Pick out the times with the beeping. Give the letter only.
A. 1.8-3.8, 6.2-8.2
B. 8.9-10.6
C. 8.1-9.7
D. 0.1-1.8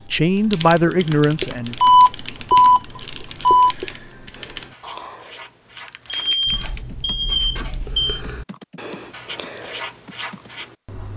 A.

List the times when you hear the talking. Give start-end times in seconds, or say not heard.
0.1-1.8.